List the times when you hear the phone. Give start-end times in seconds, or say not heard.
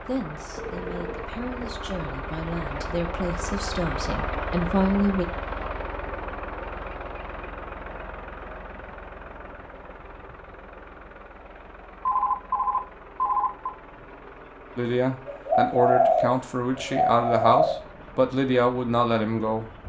0.6-1.8, 12.1-13.7.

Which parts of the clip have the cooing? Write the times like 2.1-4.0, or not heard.
14.8-17.8.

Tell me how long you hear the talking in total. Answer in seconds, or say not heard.
10 s.